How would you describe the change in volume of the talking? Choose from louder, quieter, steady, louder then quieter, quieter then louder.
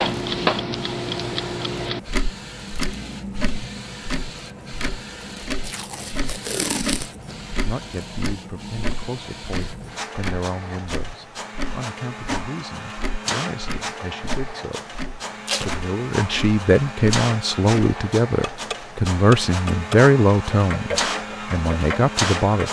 louder.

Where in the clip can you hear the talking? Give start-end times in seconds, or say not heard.
7.7-22.6.